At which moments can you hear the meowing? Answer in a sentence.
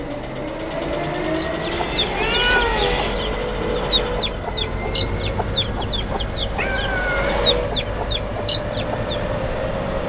The meowing can be heard from 1.7 to 3.2 s and from 6.5 to 7.5 s.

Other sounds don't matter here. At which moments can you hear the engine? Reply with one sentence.
You can hear the engine from 0.0 to 10.0 s.